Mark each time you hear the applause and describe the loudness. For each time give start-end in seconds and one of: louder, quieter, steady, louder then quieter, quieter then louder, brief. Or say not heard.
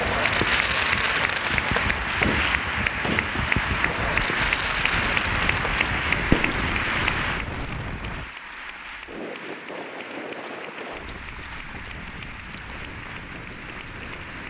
0.0-14.4 quieter.